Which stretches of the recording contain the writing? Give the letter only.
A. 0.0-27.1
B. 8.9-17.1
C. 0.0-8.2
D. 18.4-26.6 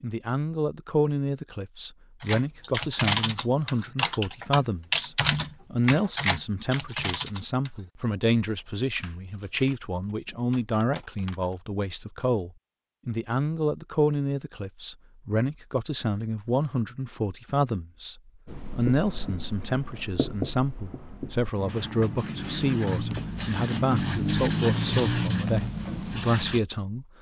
D.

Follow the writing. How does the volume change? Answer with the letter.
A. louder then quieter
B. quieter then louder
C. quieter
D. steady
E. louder
E.